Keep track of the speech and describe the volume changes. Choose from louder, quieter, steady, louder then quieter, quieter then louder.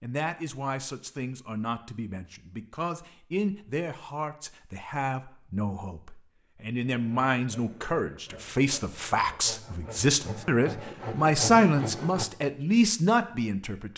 louder.